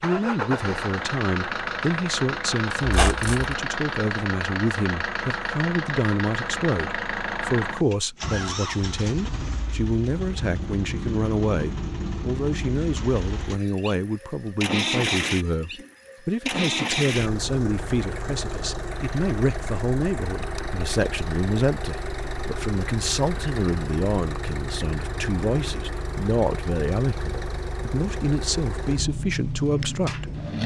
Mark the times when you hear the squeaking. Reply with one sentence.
The squeaking can be heard from 2.8 to 3.5 s.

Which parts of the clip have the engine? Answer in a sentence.
You can hear the engine from 0.0 to 30.6 s.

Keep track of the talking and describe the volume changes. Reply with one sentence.
The loudness of the talking stays about the same.